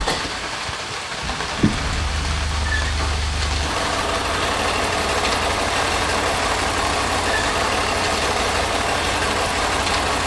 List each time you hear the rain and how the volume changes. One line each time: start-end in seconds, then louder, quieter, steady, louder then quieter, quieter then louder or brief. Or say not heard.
0.0-10.2 steady.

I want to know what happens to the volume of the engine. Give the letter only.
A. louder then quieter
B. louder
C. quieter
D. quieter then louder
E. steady
B.